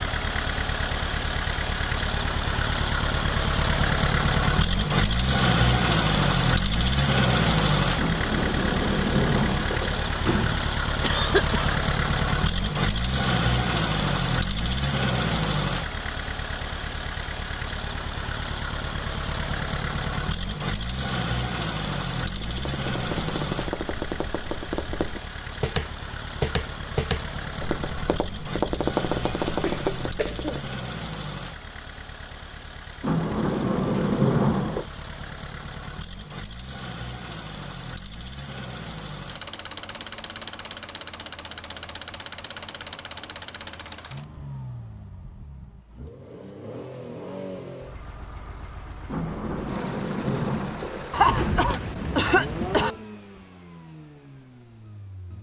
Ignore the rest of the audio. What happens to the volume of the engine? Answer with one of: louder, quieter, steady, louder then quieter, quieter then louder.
quieter.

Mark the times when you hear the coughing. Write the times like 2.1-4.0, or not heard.
11.0-11.8, 29.4-30.6, 51.1-53.0.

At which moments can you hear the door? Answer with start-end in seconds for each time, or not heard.
8.0-10.7, 33.0-34.9, 49.0-51.7.